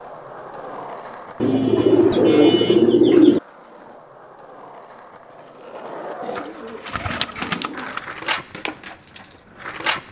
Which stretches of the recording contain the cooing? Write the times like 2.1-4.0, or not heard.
1.4-3.4, 6.2-8.0.